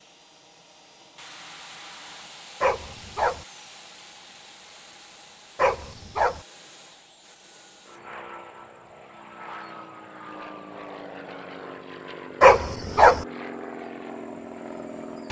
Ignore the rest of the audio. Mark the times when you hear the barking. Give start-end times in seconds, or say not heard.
2.6-3.5, 5.5-6.4, 12.4-13.2.